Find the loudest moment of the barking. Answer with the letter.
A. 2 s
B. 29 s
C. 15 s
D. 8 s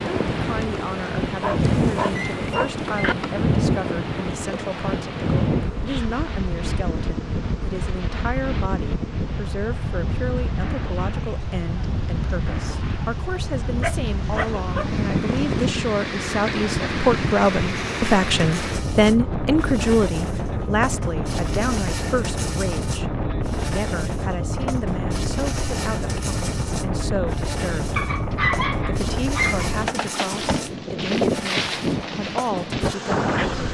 B.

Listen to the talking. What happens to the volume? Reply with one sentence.
The loudness of the talking goes up, then down.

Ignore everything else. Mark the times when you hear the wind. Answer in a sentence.
You can hear the wind from 0.0 to 33.6 s.